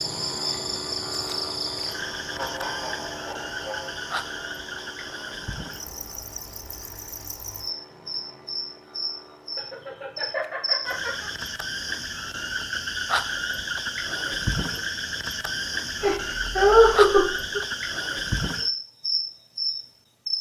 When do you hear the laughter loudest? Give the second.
17 s.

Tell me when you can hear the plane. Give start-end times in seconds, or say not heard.
0.0-11.4.